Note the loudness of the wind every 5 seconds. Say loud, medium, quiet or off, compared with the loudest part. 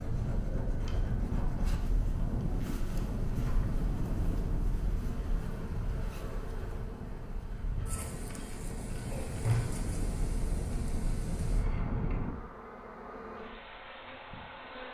loud, medium, loud.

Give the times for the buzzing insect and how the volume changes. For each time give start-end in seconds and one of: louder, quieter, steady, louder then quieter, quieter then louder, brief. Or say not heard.
0.0-14.8 steady.